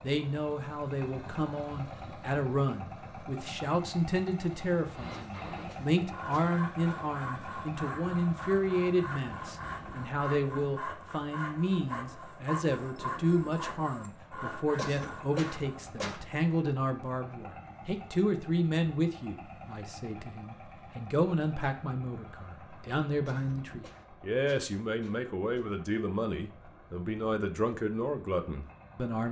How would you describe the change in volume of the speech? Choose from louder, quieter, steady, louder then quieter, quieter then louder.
steady.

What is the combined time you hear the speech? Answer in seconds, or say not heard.
29 s.